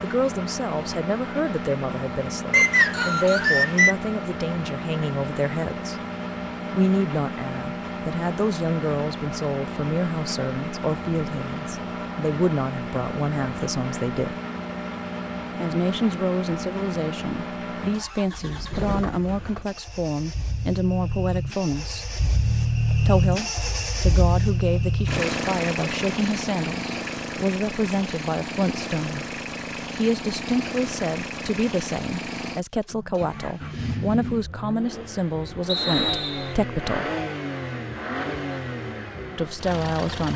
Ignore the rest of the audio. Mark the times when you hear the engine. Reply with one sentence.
The engine can be heard from 0.0 to 40.3 s.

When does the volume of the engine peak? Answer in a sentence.
The volume of the engine peaks at 23 seconds.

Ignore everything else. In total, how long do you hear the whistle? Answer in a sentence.
The whistle can be heard for 2 seconds in total.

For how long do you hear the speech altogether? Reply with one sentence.
The speech can be heard for 35 seconds in total.